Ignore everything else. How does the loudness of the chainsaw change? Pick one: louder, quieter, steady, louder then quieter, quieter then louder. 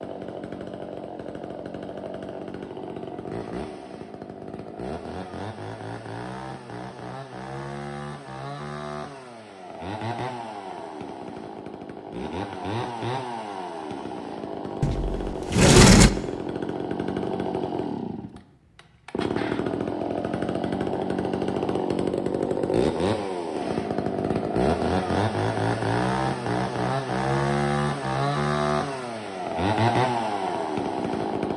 louder.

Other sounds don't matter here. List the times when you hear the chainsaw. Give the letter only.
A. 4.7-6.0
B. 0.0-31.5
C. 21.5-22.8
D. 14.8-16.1
B.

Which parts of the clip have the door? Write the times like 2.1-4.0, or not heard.
14.8-16.1.